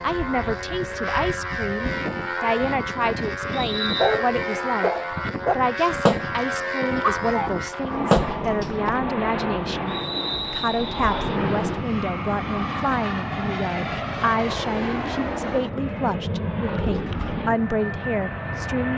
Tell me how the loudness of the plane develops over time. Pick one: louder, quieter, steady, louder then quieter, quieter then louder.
steady.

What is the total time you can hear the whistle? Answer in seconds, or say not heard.
2 s.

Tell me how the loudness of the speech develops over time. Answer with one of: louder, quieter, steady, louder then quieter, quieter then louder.
steady.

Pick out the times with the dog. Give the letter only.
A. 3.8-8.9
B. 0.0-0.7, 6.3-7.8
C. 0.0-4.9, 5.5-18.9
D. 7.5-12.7
A.